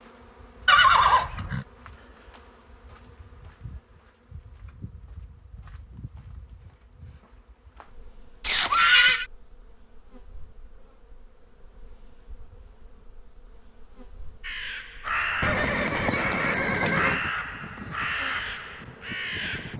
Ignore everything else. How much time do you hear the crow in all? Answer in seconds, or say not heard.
5 s.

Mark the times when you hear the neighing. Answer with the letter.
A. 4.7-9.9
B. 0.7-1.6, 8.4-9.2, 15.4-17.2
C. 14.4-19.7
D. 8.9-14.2
B.